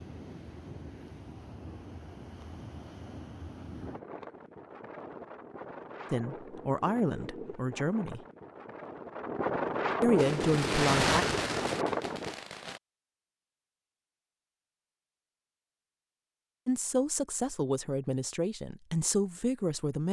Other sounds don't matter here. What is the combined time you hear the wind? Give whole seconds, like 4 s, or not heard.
12 s.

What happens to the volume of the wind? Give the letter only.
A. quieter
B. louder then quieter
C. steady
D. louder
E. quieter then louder
D.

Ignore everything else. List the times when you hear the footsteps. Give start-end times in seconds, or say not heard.
not heard.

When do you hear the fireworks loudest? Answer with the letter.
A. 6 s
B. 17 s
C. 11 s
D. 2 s
C.